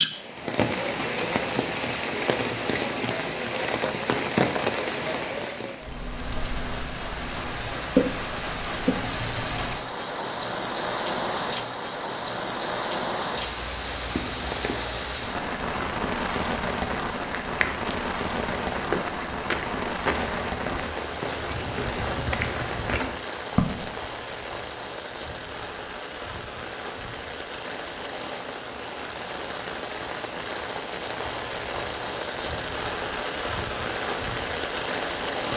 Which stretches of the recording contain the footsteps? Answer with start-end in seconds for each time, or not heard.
17.4-23.9.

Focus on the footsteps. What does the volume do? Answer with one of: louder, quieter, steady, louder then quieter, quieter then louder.
steady.